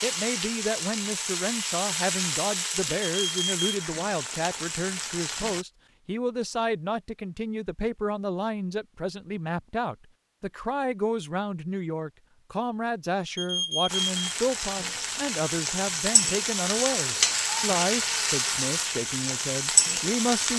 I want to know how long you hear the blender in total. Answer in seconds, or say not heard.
not heard.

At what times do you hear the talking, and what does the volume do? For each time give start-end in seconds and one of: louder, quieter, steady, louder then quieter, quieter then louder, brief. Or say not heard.
0.0-20.5 steady.